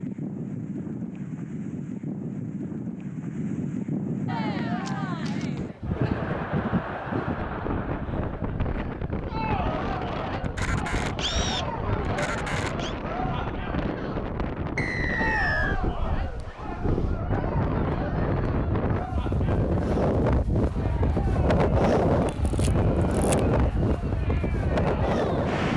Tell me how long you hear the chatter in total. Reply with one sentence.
You can hear the chatter for 21 seconds altogether.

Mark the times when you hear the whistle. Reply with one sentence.
The whistle can be heard from 14.8 to 15.8 s.